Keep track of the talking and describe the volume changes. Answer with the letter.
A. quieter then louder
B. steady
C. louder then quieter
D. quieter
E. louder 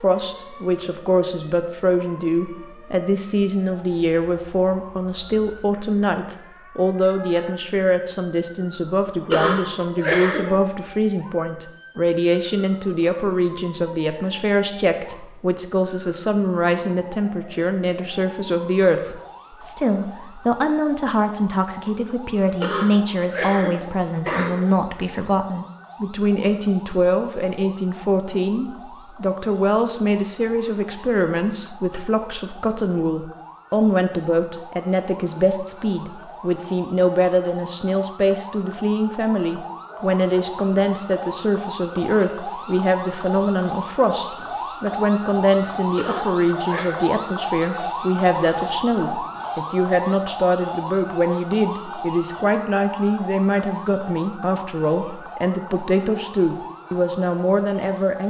B.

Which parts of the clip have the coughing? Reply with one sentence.
The coughing can be heard from 9.3 to 10.6 s, from 22.6 to 24.6 s and from 46.0 to 47.0 s.